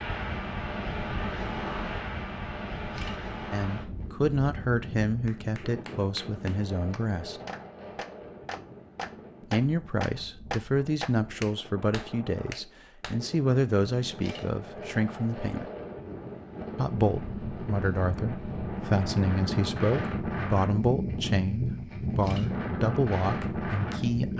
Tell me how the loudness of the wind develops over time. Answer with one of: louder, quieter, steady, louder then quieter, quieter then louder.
quieter then louder.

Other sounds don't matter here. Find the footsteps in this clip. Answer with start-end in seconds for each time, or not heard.
not heard.